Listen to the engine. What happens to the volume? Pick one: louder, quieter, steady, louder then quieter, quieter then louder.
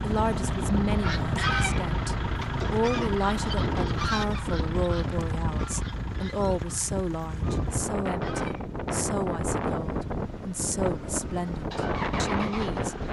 quieter then louder.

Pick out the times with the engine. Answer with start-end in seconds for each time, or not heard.
0.0-13.0.